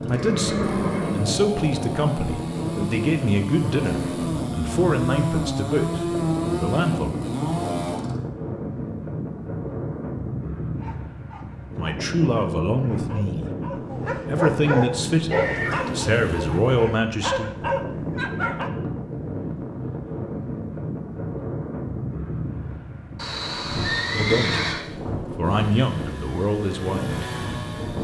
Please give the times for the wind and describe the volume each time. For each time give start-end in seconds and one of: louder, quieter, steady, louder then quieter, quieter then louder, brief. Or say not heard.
0.0-27.9 steady.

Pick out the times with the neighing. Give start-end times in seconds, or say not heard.
0.1-1.3, 15.3-16.1, 23.1-24.9.